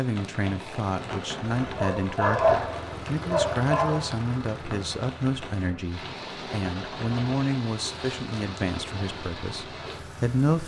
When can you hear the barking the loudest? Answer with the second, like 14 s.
2 s.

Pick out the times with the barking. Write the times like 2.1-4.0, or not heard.
1.8-4.2.